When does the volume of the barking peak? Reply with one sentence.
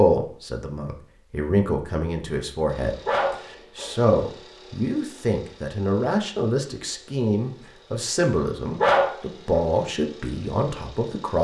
The volume of the barking peaks at 9 seconds.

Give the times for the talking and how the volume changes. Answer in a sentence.
The talking can be heard from 0.0 to 11.3 s, at a steady volume.